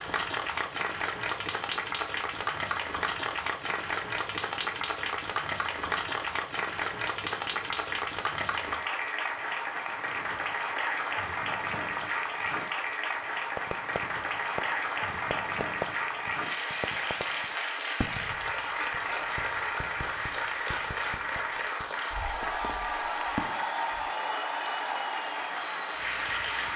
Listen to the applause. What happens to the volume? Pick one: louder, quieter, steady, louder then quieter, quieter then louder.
steady.